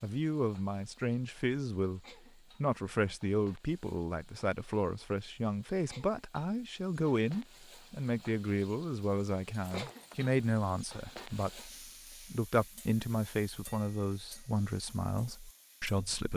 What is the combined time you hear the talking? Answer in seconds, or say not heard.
16 s.